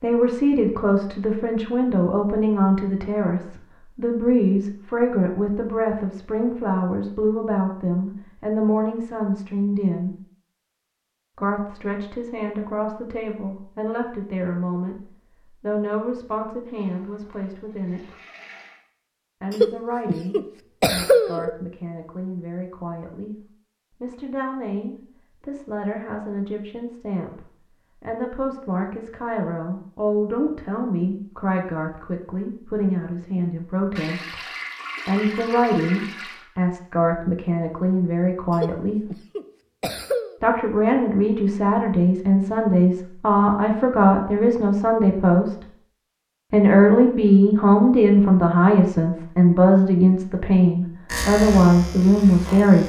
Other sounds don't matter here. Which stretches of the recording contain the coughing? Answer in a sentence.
You can hear the coughing from 19.5 to 21.5 s and from 38.6 to 40.3 s.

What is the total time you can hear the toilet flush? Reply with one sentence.
The toilet flush can be heard for 5 seconds in total.